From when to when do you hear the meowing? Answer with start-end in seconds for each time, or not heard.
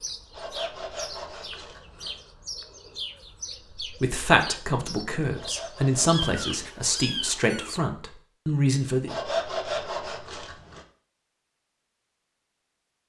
6.0-7.7.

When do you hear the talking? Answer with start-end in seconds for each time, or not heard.
3.8-9.2.